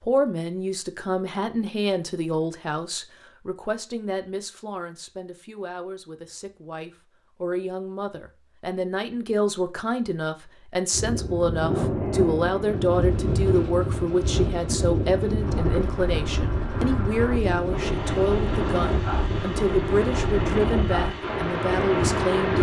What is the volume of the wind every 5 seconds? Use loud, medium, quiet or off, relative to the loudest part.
off, off, loud, loud, loud.